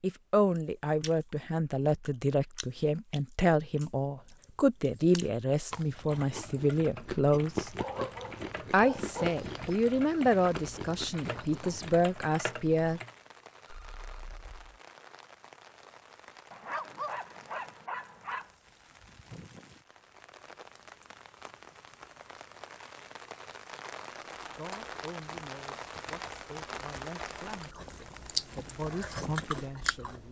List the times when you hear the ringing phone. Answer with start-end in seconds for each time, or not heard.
13.7-14.8.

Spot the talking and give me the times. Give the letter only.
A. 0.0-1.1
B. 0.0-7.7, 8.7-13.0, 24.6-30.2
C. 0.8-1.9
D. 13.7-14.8
B.